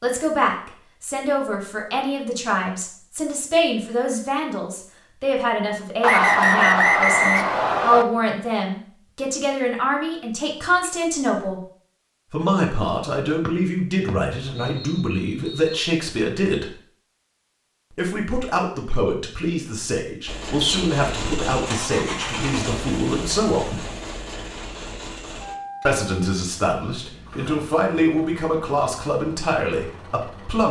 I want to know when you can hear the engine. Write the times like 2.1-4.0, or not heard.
20.2-30.6.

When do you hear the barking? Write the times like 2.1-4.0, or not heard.
not heard.